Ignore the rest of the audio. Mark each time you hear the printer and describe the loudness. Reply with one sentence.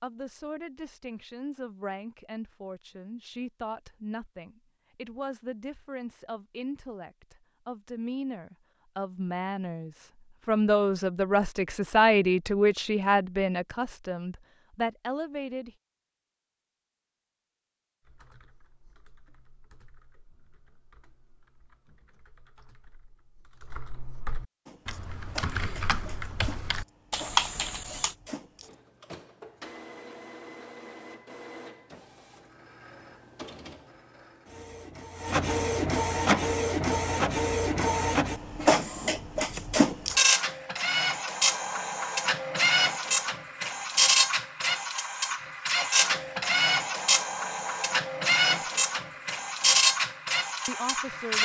The printer can be heard from 24.6 to 51.4 s, getting louder.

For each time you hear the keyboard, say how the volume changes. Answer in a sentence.
You can hear the keyboard from 18.0 to 28.1 s, getting louder.